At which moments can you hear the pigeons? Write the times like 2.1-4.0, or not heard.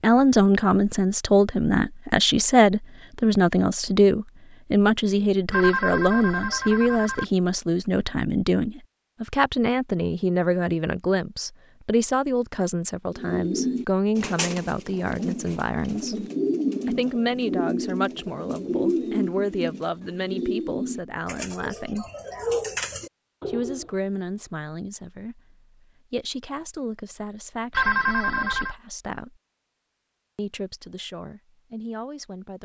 13.2-23.9.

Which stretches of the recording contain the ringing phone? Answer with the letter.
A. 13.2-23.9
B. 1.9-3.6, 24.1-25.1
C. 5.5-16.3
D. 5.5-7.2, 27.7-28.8
D.